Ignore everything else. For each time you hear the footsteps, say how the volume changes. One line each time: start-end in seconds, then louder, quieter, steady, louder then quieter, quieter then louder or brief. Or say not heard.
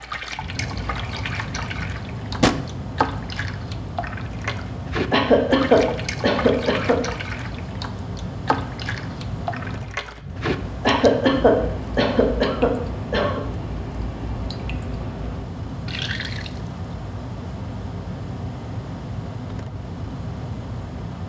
not heard.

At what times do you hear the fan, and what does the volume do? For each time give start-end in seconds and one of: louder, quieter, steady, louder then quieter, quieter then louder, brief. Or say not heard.
0.0-21.2 steady.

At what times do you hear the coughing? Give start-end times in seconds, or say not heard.
5.1-7.0, 10.8-13.4.